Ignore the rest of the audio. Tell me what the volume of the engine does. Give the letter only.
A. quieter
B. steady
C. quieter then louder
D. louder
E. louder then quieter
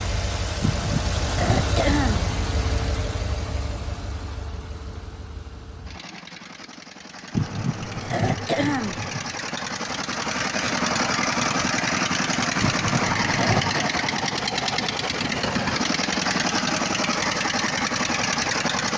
C.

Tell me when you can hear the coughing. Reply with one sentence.
You can hear the coughing from 0.6 to 2.4 s, from 7.3 to 9.3 s and from 12.6 to 13.8 s.